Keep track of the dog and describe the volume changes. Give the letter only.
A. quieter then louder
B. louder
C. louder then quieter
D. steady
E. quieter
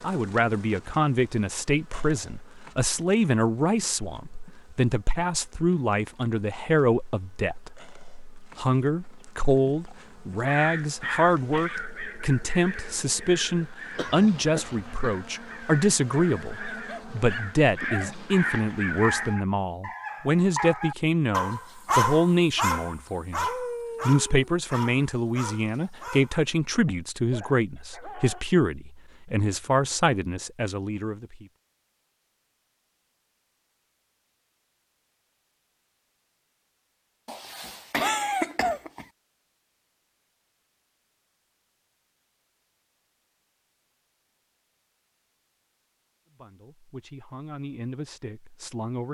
C.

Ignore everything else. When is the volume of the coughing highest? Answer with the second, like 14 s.
38 s.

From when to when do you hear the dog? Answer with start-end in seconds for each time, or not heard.
16.7-28.4.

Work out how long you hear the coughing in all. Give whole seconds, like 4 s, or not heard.
3 s.